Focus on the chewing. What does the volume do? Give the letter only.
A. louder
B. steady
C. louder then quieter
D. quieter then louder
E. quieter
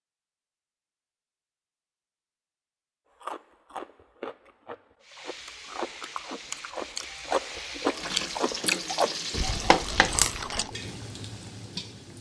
A.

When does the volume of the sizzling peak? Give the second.
10 s.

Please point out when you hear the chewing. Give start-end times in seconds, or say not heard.
3.2-10.7.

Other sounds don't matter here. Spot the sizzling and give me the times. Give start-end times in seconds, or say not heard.
5.0-12.1.